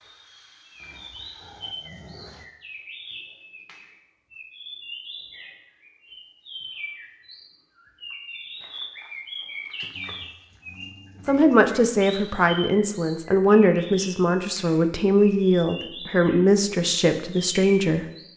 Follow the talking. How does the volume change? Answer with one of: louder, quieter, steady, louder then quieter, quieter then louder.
steady.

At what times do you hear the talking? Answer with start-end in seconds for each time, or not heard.
11.2-18.1.